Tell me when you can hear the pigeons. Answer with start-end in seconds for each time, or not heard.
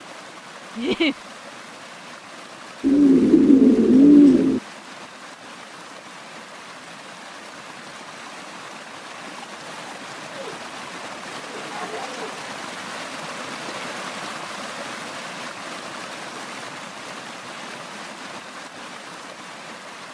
2.8-4.6, 10.2-12.3.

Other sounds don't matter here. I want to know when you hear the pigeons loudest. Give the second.
4 s.